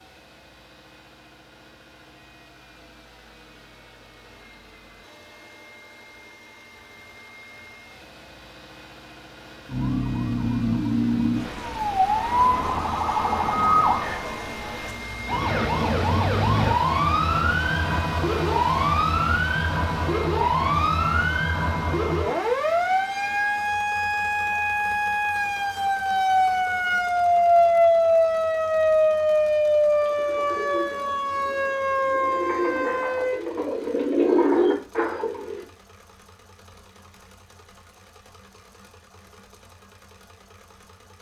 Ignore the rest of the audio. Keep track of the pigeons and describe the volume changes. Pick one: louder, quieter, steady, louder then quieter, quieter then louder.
quieter then louder.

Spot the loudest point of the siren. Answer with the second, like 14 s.
28 s.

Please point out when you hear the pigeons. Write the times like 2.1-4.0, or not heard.
30.0-35.6.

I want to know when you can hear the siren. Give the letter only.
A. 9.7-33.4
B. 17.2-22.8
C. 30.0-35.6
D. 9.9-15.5
A.